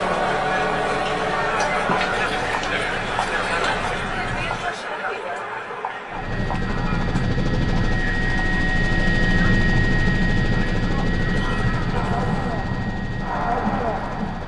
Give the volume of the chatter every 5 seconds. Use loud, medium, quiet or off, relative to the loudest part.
loud, medium, medium.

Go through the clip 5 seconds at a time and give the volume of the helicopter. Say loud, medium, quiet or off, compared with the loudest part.
quiet, loud, loud.